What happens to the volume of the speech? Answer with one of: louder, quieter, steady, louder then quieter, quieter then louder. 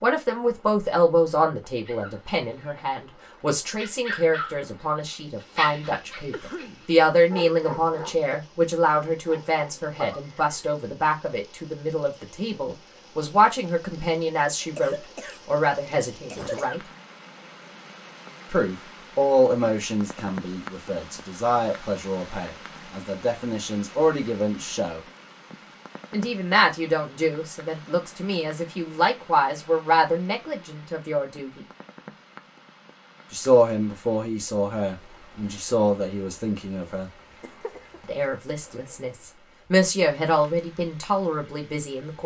steady.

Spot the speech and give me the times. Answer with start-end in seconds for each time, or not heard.
0.0-16.8, 18.5-25.0, 26.1-31.6, 33.3-37.1, 38.0-42.2.